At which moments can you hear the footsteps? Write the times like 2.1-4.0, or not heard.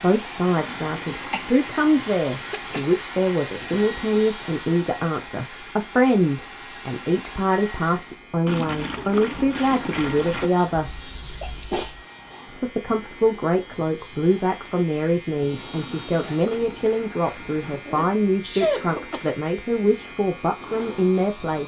not heard.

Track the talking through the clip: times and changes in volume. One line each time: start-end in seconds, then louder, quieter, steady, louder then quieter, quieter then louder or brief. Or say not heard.
0.0-11.0 steady
12.5-21.6 steady.